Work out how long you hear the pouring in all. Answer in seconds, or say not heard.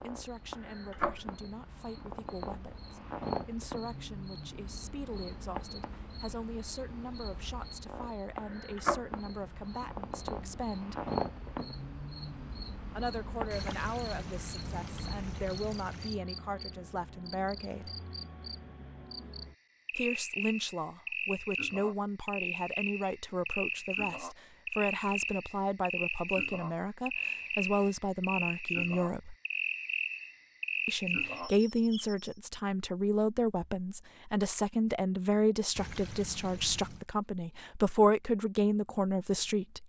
4 s.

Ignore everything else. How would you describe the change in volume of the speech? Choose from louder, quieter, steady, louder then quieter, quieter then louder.
louder.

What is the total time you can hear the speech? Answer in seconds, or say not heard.
34 s.